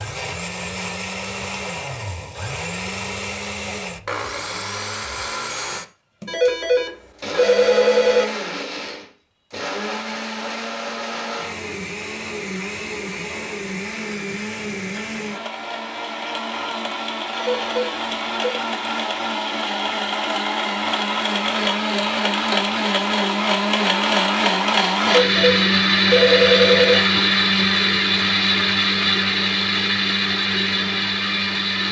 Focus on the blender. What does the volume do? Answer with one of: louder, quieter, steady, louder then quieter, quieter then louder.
louder.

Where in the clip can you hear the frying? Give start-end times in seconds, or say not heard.
not heard.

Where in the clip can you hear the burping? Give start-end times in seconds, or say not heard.
not heard.